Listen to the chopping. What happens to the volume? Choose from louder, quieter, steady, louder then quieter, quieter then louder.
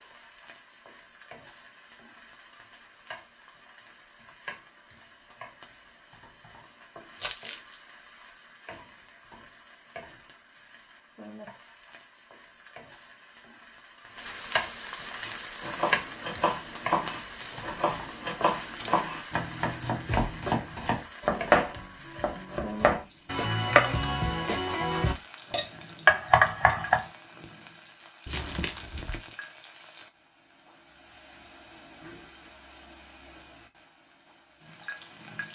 louder.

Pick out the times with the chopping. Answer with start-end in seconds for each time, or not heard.
15.1-27.1.